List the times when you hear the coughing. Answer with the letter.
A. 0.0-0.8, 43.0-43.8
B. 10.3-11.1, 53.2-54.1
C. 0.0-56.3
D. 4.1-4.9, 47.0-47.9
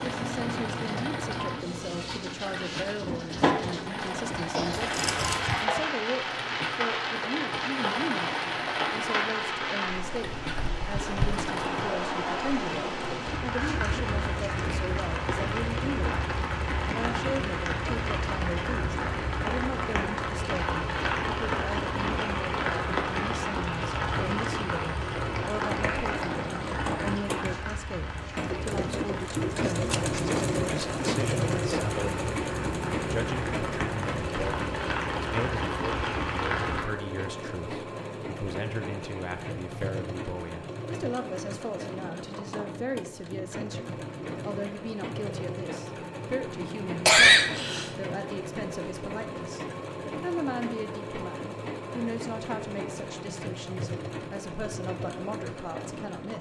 D.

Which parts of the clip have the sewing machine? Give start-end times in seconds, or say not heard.
0.0-56.3.